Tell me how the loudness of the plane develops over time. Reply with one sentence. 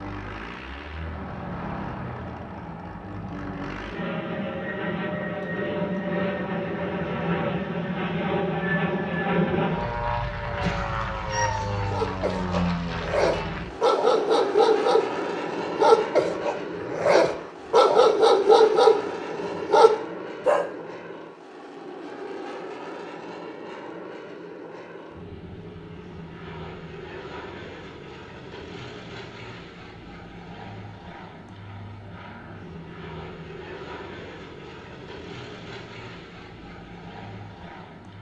The loudness of the plane goes down.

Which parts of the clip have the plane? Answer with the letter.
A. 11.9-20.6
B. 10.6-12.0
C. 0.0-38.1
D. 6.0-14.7
C.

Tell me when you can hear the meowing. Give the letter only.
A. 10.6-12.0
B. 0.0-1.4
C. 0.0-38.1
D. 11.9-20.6
A.